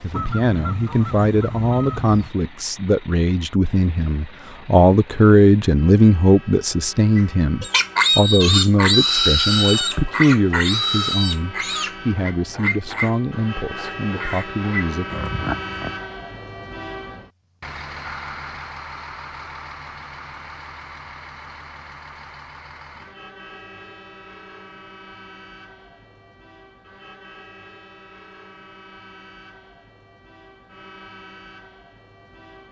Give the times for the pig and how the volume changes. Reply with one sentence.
You can hear the pig from 7.2 to 15.9 s, getting quieter.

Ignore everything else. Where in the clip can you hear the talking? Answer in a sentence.
The talking can be heard from 0.0 to 15.1 s.